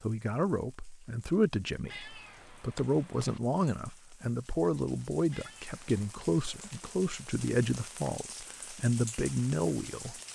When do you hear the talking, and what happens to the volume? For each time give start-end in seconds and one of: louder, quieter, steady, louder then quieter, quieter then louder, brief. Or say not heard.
0.0-10.2 steady.